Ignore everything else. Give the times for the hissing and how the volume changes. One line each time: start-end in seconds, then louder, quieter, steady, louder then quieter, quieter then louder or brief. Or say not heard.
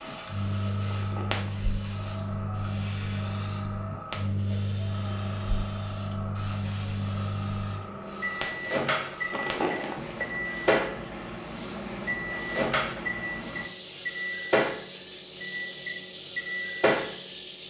0.0-17.6 steady.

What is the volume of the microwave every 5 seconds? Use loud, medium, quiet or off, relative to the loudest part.
medium, loud, loud, loud.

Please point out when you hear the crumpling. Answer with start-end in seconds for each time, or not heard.
0.8-1.7, 9.3-10.3.